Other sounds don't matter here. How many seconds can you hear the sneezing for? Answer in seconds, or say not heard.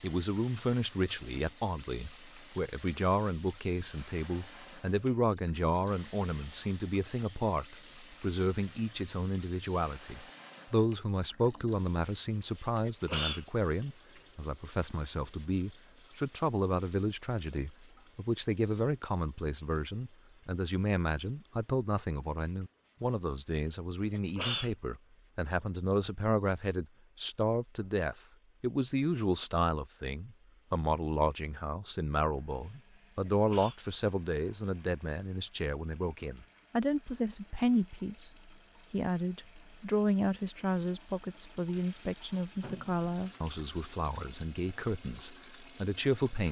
2 s.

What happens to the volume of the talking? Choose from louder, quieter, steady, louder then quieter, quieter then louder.
steady.